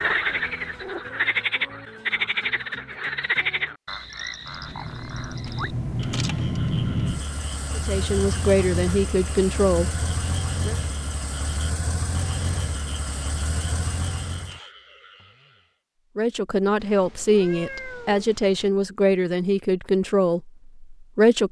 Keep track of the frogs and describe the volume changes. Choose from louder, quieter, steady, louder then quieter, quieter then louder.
quieter.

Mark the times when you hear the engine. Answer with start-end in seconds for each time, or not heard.
4.3-14.7.